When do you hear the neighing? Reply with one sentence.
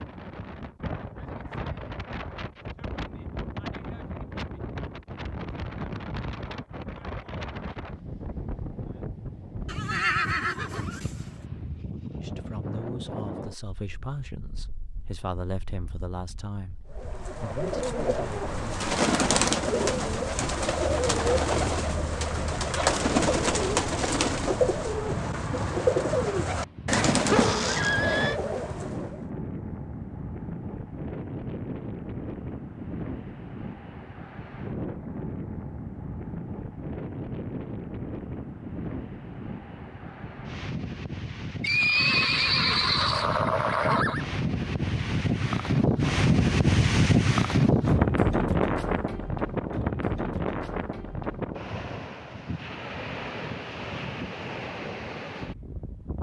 You can hear the neighing from 9.7 to 11.4 s, from 26.9 to 28.4 s and from 41.6 to 44.2 s.